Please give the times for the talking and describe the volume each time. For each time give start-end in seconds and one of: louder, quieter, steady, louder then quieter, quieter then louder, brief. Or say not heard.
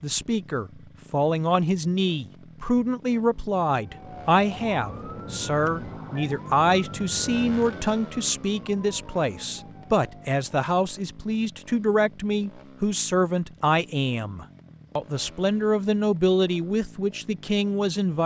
0.0-18.2 steady.